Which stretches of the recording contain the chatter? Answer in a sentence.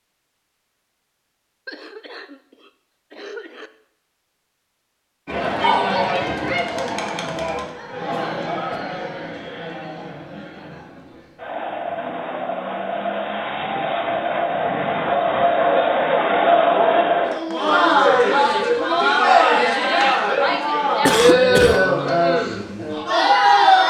The chatter can be heard from 5.2 to 23.8 s.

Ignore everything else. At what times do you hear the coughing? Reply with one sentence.
The coughing can be heard from 1.6 to 3.7 s, from 8.1 to 8.8 s and from 21.1 to 21.8 s.